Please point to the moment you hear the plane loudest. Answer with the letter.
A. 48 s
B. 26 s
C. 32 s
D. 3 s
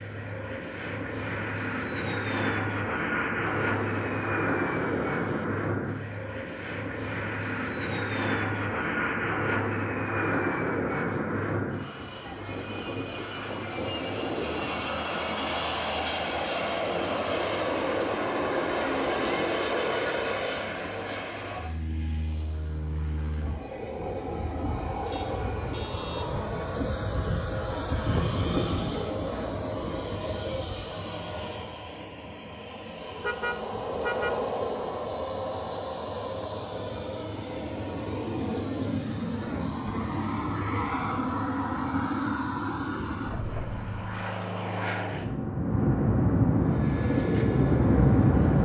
A.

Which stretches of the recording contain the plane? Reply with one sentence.
You can hear the plane from 0.0 to 48.6 s.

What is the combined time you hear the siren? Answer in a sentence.
The siren can't be heard in this clip.